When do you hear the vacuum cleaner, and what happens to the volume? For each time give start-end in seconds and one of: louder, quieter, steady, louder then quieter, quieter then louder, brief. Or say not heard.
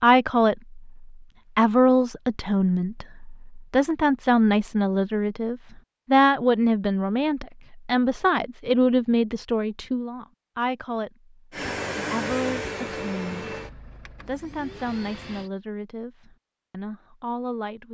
11.5-15.5 quieter then louder.